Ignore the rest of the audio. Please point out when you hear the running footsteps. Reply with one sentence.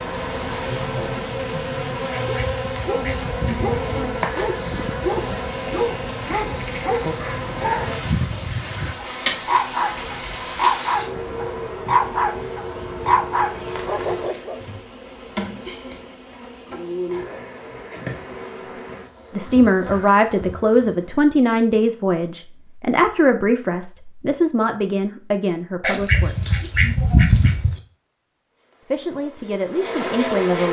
You can't hear the running footsteps here.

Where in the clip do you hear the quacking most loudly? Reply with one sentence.
The volume of the quacking peaks at 27 seconds.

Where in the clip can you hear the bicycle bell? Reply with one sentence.
The bicycle bell can't be heard in this clip.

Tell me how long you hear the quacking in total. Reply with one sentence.
The quacking can be heard for 4 seconds in total.